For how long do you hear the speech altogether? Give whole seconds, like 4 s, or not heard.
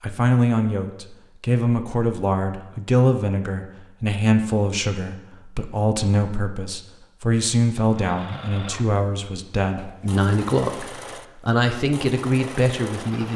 13 s.